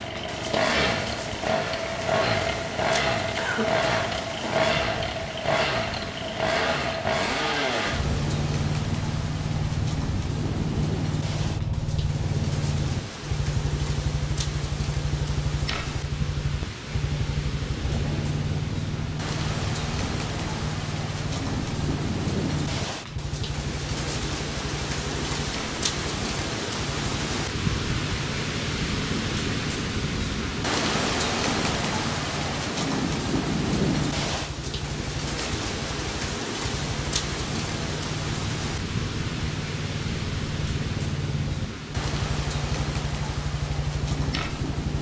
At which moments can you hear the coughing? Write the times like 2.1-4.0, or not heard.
3.4-4.7.